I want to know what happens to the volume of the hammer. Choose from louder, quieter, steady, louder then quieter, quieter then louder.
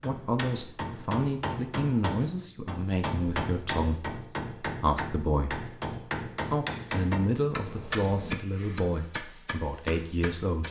steady.